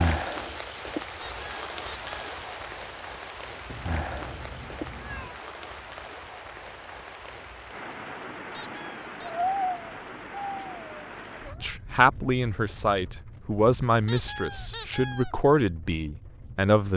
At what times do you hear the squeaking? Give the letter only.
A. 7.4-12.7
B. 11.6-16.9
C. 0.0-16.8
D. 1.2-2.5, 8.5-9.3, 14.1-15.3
D.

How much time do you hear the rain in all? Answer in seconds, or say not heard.
17 s.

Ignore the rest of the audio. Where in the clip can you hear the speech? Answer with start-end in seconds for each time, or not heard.
11.6-16.9.